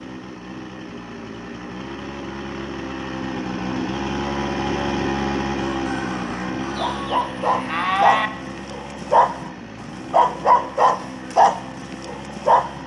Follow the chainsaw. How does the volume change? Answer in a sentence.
The loudness of the chainsaw goes up, then down.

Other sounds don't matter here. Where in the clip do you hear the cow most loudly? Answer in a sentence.
The volume of the cow peaks at 8 seconds.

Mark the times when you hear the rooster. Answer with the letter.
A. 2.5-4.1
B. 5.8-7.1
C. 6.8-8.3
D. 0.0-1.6
B.